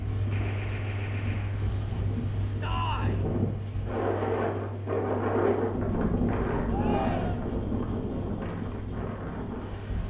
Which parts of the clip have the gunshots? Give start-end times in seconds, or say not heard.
0.3-1.7.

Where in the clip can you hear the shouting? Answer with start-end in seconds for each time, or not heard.
2.6-3.2, 6.7-7.6.